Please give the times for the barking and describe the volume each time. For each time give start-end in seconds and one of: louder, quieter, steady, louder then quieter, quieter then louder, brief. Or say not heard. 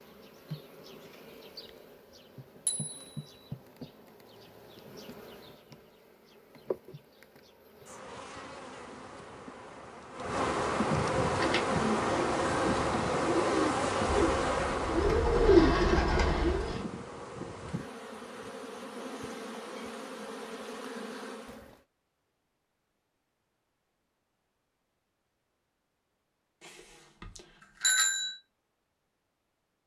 not heard.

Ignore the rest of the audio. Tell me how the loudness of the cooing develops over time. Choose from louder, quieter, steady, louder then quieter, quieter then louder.
louder.